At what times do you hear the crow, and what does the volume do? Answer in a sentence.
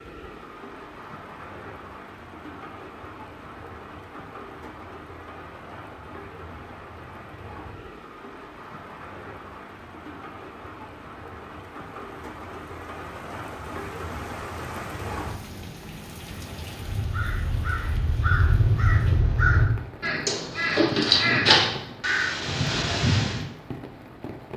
You can hear the crow from 16.8 to 23.4 s, getting louder then quieter.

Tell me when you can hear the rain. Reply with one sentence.
You can hear the rain from 0.0 to 24.5 s.